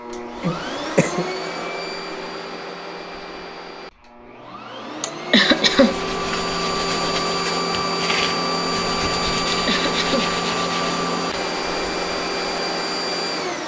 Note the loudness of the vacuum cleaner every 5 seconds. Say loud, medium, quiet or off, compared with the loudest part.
medium, loud, loud.